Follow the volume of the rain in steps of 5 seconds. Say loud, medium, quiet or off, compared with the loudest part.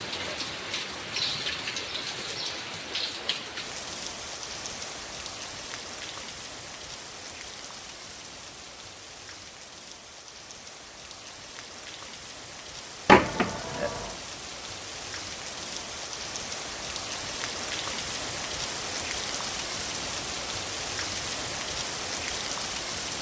loud, medium, medium, loud, loud.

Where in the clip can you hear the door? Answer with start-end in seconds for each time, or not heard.
13.1-14.1.